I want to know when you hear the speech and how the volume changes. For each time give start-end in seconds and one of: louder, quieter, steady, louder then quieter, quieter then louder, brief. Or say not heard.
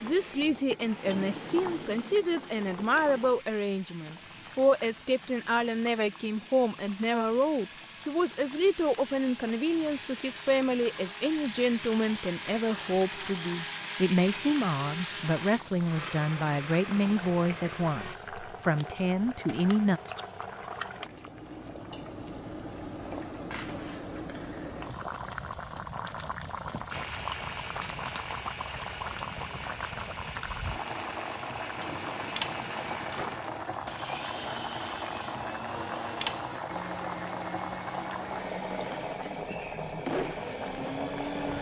0.0-20.0 steady.